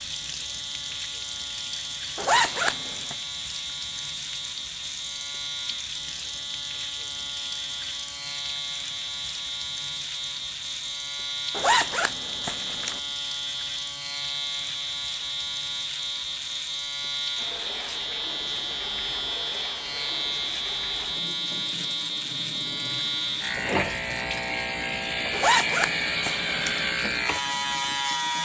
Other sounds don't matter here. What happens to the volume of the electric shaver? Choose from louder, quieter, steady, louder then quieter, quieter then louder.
louder.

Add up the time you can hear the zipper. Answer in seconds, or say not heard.
4 s.